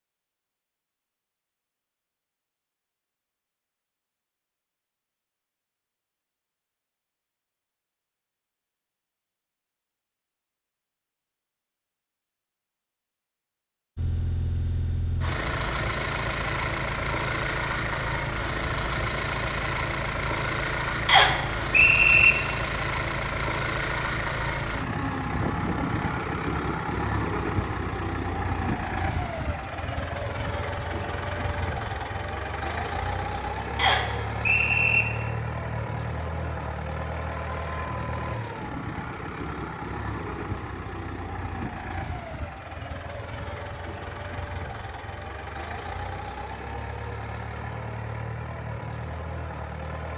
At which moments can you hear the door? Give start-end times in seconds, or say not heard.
not heard.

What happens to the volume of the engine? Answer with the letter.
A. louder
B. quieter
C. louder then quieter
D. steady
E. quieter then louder
B.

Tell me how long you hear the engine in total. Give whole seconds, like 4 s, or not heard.
36 s.